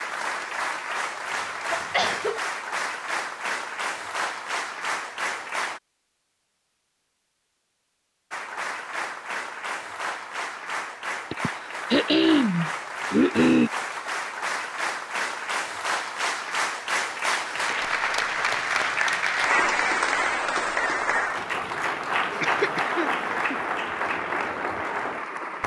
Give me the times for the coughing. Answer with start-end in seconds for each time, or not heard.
1.7-2.4, 11.3-13.7, 22.4-23.6.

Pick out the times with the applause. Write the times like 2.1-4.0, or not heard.
0.0-5.8, 8.3-25.6.